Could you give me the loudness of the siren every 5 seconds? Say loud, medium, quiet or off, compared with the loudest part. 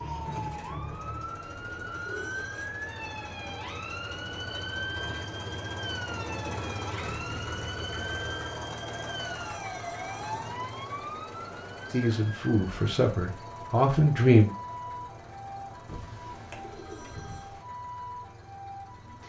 loud, loud, loud, medium.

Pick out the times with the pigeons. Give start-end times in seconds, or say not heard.
1.6-2.4, 15.8-17.6.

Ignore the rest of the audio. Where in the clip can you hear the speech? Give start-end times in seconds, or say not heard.
11.9-14.5.